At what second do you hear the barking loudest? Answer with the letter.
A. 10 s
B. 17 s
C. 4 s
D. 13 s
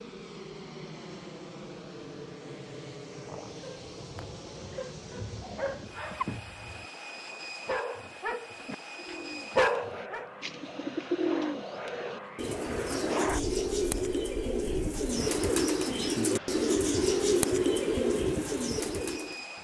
A.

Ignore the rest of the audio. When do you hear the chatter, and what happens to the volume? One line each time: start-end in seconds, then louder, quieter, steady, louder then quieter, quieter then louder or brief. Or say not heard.
not heard.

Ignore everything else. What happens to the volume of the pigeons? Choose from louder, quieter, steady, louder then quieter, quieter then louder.
louder.